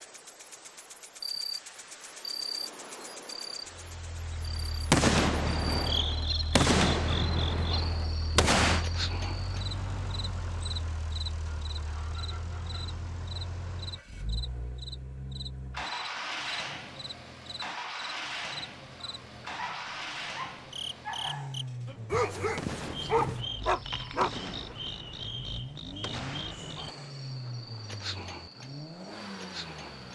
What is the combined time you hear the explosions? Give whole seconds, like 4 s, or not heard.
8 s.